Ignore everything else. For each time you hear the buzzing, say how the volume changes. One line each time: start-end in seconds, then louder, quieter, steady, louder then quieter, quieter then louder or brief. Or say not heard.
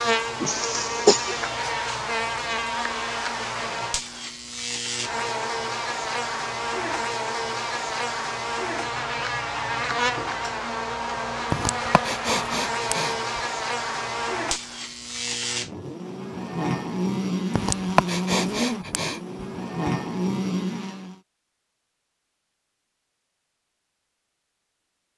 0.0-21.2 steady.